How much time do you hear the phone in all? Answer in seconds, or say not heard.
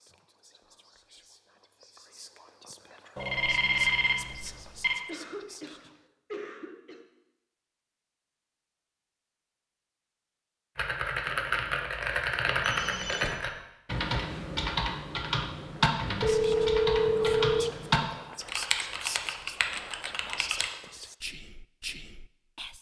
4 s.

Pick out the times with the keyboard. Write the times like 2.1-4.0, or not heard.
10.8-20.7.